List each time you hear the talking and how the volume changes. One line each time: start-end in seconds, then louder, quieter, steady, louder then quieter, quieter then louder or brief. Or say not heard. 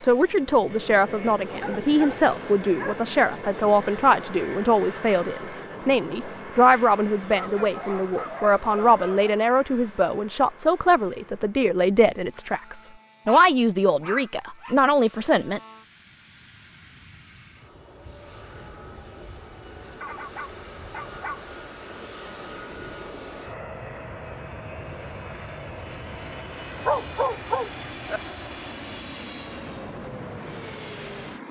0.0-15.6 steady.